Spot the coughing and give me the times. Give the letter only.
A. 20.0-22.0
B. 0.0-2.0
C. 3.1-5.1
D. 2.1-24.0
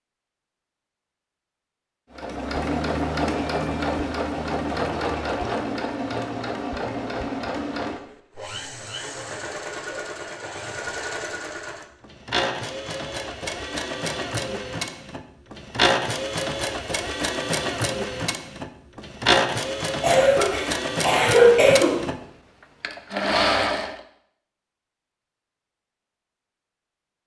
A.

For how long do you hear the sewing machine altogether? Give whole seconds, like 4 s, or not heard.
22 s.